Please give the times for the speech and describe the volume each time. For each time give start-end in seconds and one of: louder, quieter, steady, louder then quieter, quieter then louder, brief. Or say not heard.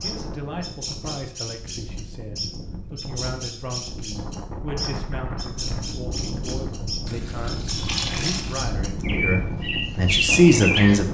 0.0-11.0 louder.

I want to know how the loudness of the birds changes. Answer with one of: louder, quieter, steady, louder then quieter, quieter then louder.
louder.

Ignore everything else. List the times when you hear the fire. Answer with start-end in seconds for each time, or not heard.
not heard.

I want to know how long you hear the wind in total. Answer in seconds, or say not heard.
11 s.